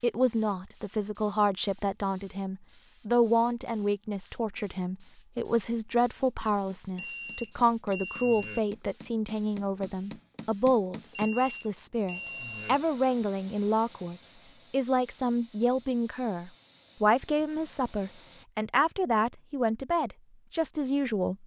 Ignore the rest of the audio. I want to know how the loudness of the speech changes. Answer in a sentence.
The volume of the speech stays about the same.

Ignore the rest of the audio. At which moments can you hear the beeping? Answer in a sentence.
The beeping can be heard from 7.0 to 8.6 s and from 11.1 to 12.8 s.